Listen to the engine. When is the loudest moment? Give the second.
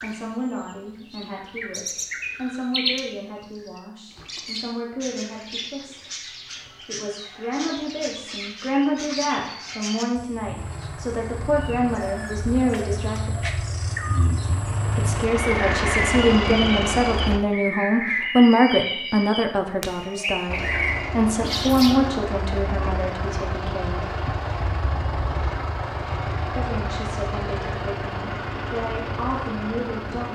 16 s.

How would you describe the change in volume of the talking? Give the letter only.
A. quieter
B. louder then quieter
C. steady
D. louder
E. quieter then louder
B.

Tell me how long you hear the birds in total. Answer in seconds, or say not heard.
22 s.